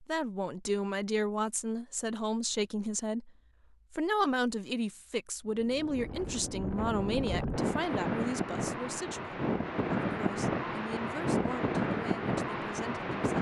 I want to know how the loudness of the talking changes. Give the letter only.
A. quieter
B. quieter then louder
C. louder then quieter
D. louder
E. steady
A.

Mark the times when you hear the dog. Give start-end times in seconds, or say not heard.
not heard.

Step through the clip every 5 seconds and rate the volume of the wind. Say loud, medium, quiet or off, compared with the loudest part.
off, loud, loud.